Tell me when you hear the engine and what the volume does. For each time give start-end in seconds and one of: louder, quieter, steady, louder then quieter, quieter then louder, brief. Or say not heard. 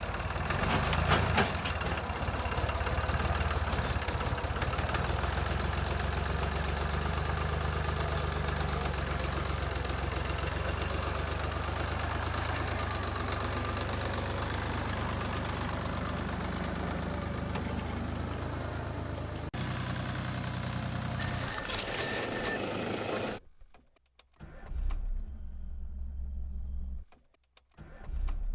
0.0-28.4 quieter.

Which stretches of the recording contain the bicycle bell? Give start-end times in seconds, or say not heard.
21.1-22.6.